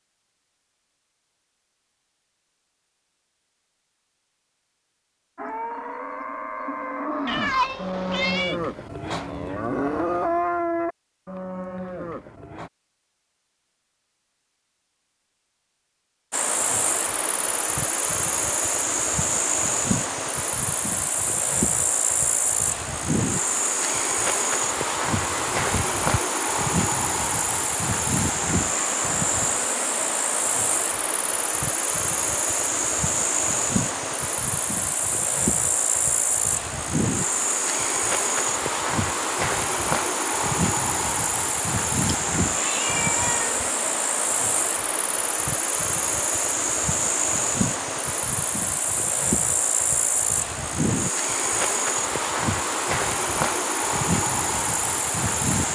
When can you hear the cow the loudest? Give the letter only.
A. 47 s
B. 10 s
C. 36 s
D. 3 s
B.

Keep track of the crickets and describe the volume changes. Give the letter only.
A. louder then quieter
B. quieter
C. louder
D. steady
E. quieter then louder
D.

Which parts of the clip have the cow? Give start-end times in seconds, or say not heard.
5.3-12.7.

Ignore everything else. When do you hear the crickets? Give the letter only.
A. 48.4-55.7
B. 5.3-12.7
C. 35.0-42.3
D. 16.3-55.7
D.